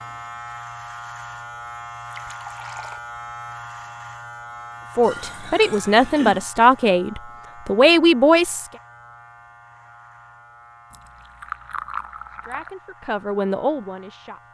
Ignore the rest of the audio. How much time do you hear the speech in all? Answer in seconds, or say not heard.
6 s.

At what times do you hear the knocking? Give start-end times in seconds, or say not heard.
not heard.